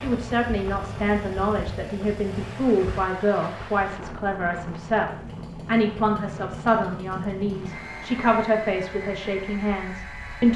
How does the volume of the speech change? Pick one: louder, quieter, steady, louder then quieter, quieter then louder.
steady.